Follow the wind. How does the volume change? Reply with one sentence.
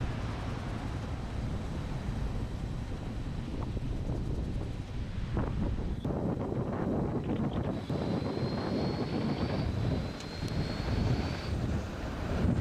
The loudness of the wind goes up.